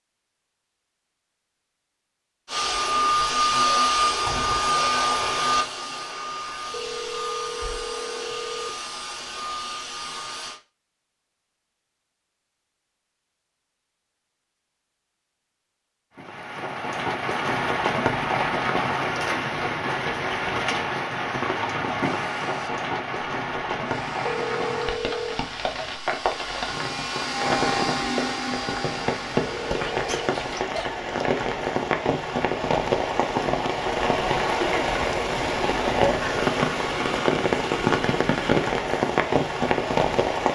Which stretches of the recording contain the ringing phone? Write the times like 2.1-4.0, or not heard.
6.7-8.7, 24.2-25.4, 29.4-30.1.